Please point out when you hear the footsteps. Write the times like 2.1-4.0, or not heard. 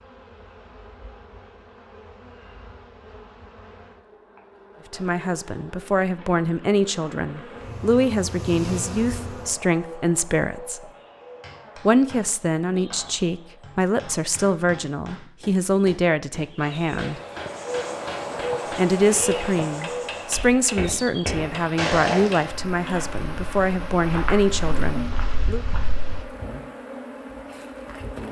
20.4-26.2.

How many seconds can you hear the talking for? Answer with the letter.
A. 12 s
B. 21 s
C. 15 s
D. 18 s
D.